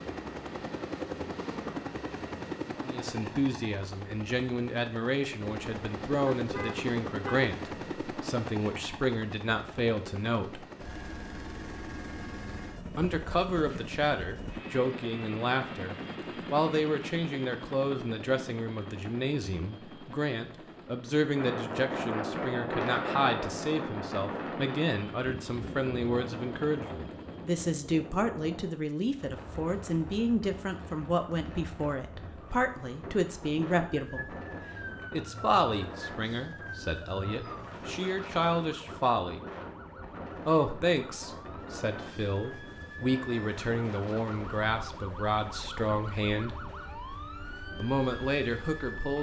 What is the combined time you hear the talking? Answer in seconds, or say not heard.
41 s.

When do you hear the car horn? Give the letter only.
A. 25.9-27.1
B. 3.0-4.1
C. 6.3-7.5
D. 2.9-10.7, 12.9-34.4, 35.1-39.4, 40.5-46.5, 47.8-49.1
C.